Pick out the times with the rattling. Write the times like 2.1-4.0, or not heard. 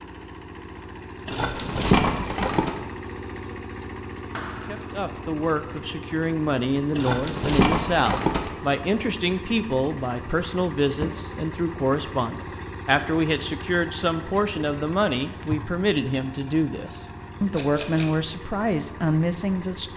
1.2-2.8, 7.0-8.5, 17.6-18.1.